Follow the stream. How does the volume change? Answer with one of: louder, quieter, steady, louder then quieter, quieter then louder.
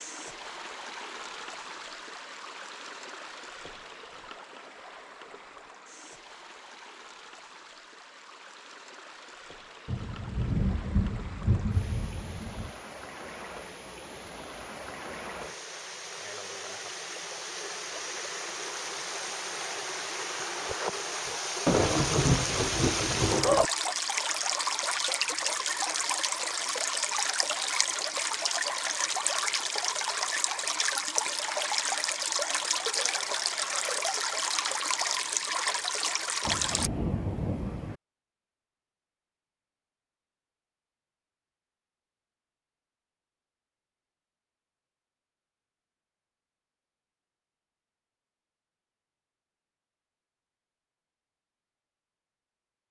louder.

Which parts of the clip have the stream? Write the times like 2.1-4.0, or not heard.
0.0-36.9.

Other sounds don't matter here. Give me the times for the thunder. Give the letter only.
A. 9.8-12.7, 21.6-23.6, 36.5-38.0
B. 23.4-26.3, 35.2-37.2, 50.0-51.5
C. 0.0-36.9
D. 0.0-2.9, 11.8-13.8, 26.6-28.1
A.